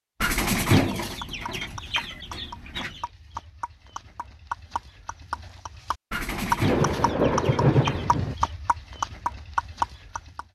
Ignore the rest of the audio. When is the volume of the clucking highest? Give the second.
1 s.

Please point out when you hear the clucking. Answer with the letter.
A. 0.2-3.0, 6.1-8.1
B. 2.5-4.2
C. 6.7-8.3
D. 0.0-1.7
A.